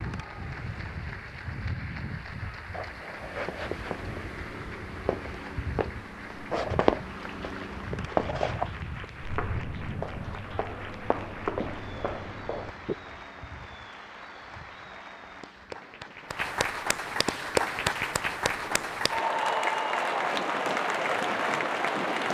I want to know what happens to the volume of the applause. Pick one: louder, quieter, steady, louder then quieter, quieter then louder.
louder.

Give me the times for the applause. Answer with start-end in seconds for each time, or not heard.
0.0-22.2.